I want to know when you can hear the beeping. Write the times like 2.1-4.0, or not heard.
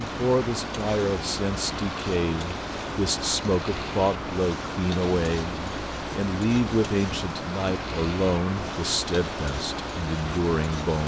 not heard.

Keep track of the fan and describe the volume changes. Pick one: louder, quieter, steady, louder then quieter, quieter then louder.
steady.